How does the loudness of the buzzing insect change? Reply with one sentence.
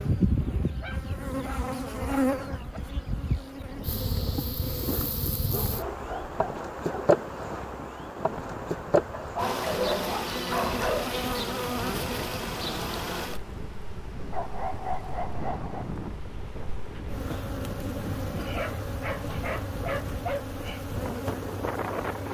The volume of the buzzing insect goes down, then up.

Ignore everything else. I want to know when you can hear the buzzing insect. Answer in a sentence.
The buzzing insect can be heard from 0.0 to 22.2 s.